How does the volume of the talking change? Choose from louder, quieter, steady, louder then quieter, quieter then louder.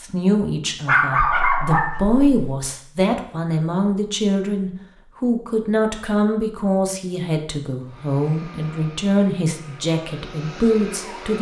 steady.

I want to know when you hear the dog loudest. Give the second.
1 s.